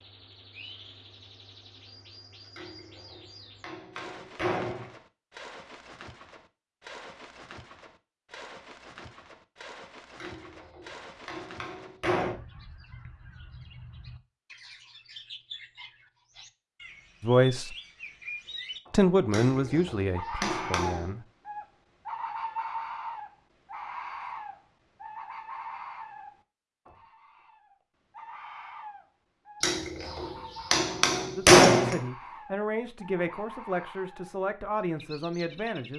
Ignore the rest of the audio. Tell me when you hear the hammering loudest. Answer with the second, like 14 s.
32 s.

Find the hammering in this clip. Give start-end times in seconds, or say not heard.
2.5-4.9, 10.2-12.3, 19.3-21.1, 29.6-32.0.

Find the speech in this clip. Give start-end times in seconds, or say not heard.
17.2-17.8, 18.9-21.2, 31.4-35.9.